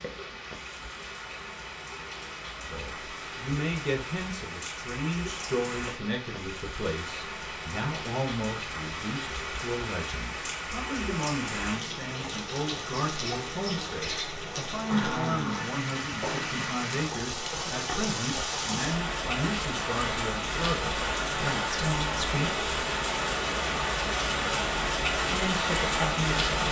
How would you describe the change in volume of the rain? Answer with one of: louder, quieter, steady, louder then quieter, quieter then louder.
louder.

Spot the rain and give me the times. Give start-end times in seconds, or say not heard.
0.0-26.6.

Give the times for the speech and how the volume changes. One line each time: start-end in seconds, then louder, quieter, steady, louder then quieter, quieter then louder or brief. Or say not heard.
2.6-22.6 steady
25.3-26.6 brief.